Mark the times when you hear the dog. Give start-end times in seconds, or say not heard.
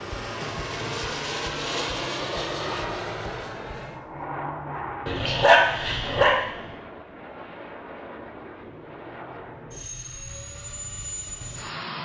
5.0-6.5.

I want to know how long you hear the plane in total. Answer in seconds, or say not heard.
12 s.